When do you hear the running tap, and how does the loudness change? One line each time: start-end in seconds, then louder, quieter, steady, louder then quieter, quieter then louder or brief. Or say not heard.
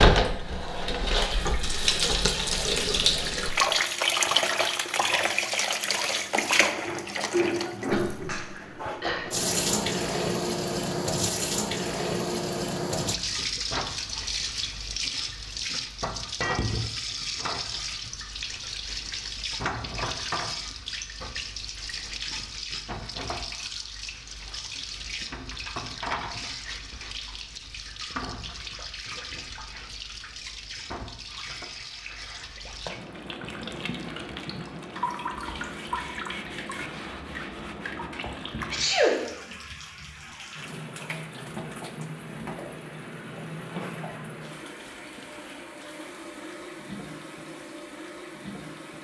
0.0-48.9 quieter.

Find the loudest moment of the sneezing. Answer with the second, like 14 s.
39 s.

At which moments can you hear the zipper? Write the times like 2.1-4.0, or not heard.
not heard.